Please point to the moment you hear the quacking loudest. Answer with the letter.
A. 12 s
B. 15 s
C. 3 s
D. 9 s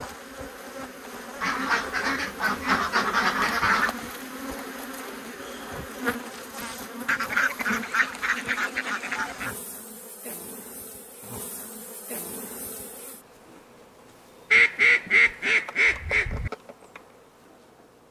B.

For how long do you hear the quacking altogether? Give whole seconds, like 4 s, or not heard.
7 s.